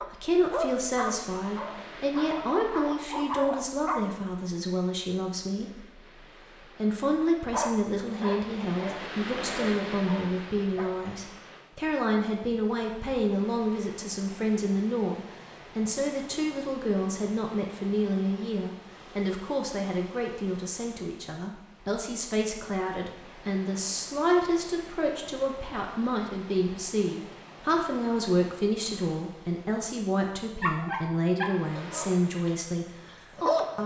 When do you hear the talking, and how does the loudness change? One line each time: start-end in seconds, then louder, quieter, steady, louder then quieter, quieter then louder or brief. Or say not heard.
0.0-33.8 steady.